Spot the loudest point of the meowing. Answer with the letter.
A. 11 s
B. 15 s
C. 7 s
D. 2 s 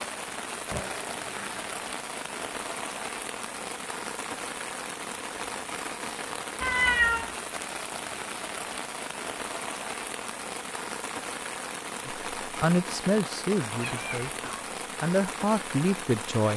C.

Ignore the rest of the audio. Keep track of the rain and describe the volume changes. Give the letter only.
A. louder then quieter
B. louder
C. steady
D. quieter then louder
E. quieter
C.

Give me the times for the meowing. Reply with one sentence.
You can hear the meowing from 0.7 to 1.8 s, from 6.6 to 7.3 s and from 13.8 to 14.7 s.